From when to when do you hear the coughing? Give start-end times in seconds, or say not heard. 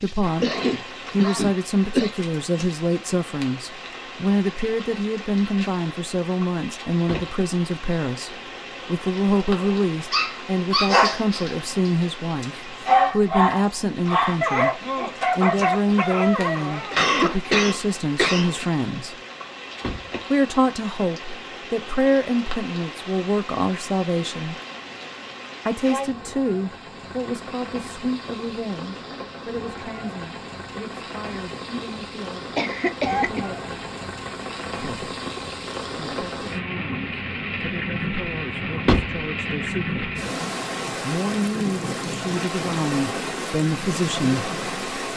0.4-2.1, 16.9-18.6, 32.5-33.5.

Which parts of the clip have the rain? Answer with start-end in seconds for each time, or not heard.
0.0-45.1.